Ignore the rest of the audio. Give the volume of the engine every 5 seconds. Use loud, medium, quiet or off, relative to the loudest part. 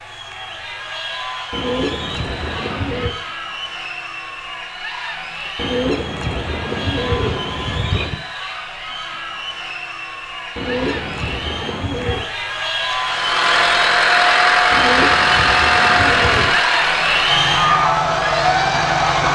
off, off, loud, loud.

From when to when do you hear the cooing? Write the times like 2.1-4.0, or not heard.
1.5-3.1, 5.5-8.2, 10.6-12.2, 14.7-16.6.